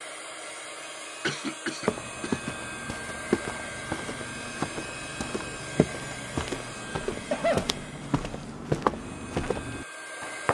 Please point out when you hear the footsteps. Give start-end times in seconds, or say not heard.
1.9-10.5.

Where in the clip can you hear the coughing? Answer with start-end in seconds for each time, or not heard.
1.2-2.4, 7.1-7.7.